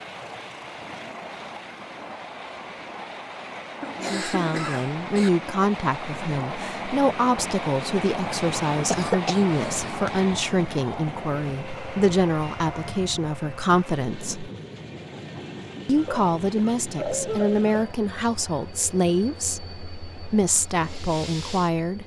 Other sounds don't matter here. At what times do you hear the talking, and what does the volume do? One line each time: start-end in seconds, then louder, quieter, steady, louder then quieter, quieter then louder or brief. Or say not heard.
4.0-14.5 steady
15.8-22.0 steady.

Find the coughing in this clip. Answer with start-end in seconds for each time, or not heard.
3.8-5.3, 8.9-10.1, 15.9-17.9.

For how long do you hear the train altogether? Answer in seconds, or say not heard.
22 s.